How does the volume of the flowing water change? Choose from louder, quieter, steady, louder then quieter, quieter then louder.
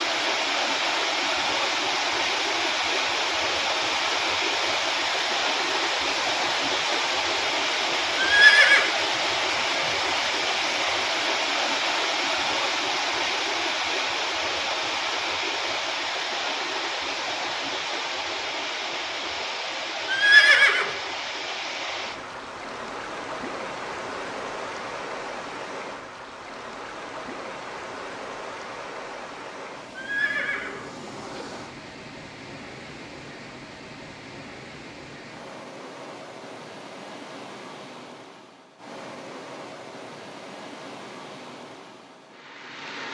quieter.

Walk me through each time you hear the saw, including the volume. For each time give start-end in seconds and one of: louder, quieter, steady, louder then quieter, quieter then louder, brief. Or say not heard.
not heard.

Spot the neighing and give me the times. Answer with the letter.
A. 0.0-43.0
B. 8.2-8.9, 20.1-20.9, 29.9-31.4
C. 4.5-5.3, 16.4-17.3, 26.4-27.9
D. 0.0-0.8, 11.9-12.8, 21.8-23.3
B.